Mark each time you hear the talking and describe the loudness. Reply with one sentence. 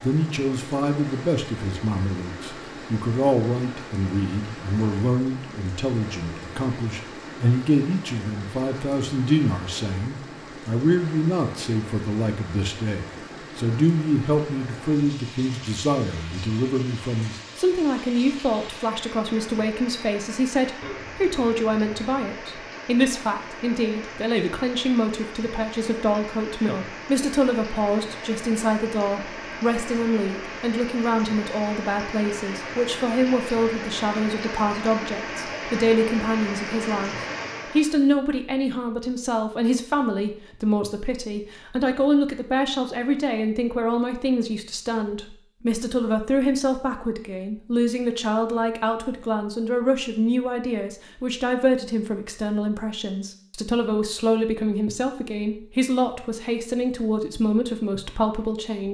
You can hear the talking from 0.0 to 58.8 s, at a steady volume.